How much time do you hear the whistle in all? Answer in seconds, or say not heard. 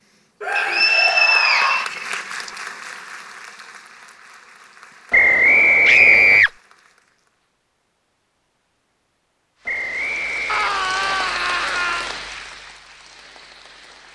5 s.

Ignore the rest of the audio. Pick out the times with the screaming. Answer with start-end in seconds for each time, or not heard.
0.4-1.9, 5.8-6.5, 10.4-12.1.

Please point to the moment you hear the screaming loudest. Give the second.
6 s.